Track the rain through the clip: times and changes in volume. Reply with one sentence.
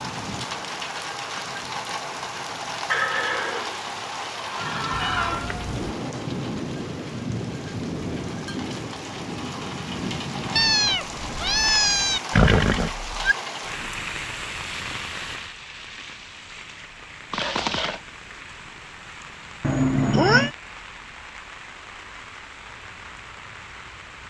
The rain can be heard from 0.0 to 24.2 s, getting quieter.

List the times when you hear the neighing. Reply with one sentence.
You can hear the neighing from 2.9 to 5.5 s, from 12.3 to 13.3 s and from 17.3 to 18.0 s.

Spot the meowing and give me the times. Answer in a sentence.
You can hear the meowing from 5.0 to 5.8 s, from 10.6 to 12.2 s and from 19.6 to 20.5 s.